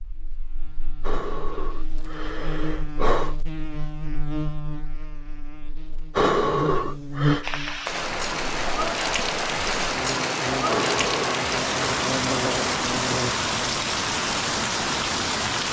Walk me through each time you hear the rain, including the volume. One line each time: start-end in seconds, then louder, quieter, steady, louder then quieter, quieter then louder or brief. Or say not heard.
7.4-15.6 steady.